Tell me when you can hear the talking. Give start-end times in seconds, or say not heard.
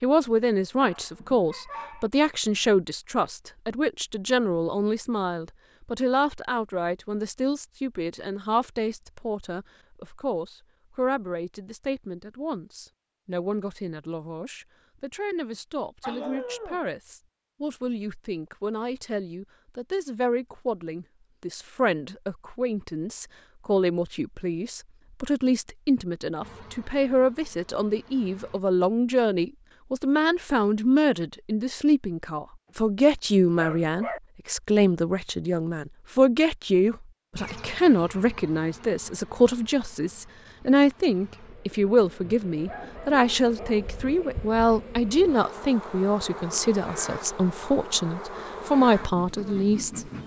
0.0-50.1.